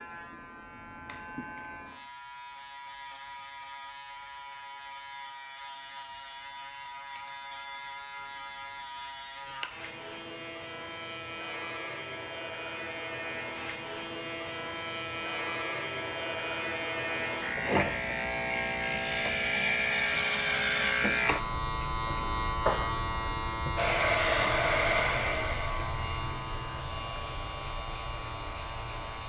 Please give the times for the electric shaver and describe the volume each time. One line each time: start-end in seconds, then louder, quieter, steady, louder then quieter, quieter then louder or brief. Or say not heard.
0.0-29.2 louder then quieter.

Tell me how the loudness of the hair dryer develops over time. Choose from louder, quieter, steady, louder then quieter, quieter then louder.
quieter.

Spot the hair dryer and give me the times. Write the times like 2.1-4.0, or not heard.
23.8-29.2.